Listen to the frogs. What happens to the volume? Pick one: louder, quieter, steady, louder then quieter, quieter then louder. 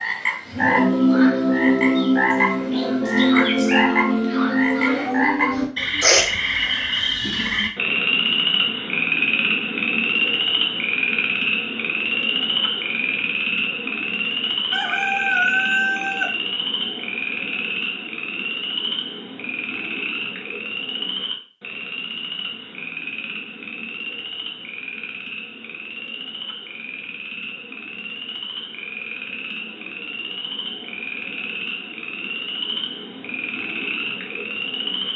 quieter.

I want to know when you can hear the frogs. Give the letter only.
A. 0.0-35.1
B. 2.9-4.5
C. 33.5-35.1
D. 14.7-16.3
A.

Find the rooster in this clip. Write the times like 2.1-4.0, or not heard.
14.7-16.3.